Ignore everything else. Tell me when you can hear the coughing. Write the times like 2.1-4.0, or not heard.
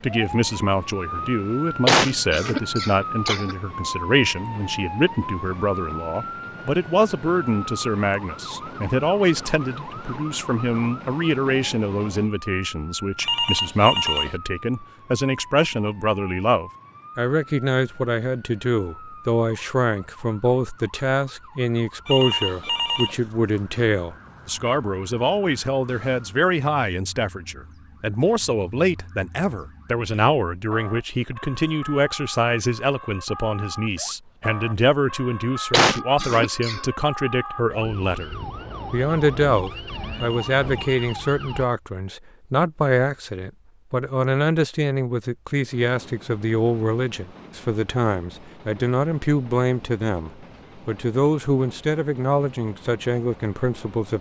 1.9-3.5, 35.7-36.8.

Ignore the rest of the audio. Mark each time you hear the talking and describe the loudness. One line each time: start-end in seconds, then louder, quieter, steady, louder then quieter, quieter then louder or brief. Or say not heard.
0.0-54.1 steady.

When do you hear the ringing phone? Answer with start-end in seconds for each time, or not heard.
13.2-14.4, 22.1-23.2, 40.1-41.1.